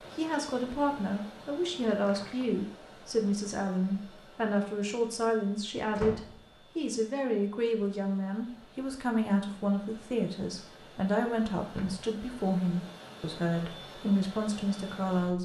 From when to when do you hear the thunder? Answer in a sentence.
The thunder can't be heard in this clip.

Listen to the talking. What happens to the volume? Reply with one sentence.
The volume of the talking stays about the same.